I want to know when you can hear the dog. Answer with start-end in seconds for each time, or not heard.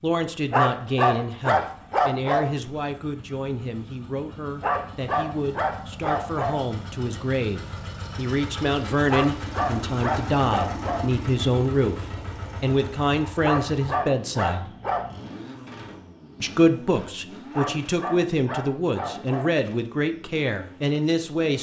0.5-2.5, 4.6-6.5, 9.1-11.0, 13.4-15.2, 17.5-19.4.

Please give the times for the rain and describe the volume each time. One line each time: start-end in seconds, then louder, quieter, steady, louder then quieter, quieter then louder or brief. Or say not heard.
not heard.